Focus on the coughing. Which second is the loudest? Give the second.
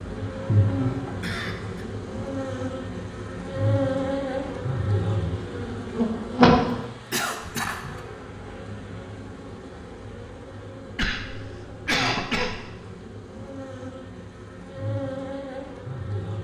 12 s.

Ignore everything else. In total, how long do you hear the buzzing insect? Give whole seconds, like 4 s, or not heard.
16 s.